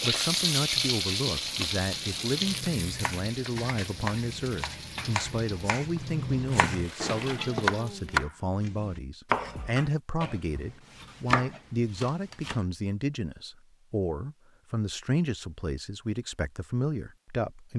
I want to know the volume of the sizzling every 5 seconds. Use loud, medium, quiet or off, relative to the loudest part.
loud, medium, off, off.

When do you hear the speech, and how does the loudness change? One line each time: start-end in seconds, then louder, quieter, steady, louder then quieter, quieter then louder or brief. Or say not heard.
0.0-17.7 steady.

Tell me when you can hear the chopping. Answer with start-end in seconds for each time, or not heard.
2.4-12.6.